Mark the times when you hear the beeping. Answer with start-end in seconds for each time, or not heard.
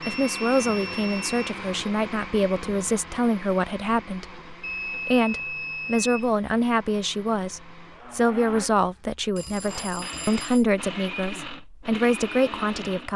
0.0-1.4, 4.6-6.3, 9.3-10.7.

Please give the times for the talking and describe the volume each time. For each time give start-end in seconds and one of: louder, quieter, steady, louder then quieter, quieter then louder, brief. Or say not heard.
0.1-13.1 steady.